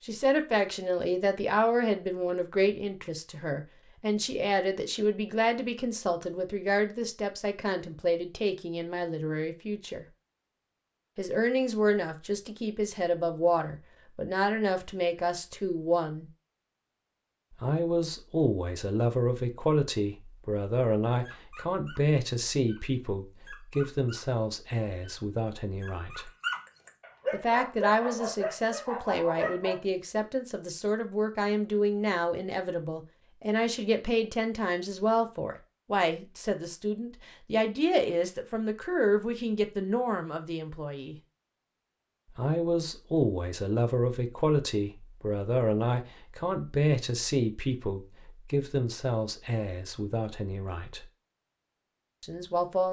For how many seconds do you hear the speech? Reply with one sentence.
The speech can be heard for 47 seconds in total.